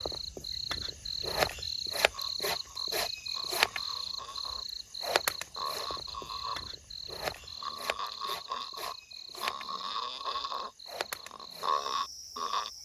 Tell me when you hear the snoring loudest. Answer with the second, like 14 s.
12 s.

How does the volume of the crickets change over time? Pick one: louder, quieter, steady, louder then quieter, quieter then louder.
quieter.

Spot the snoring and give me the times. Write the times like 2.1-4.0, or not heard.
2.1-12.7.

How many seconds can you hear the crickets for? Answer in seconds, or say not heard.
13 s.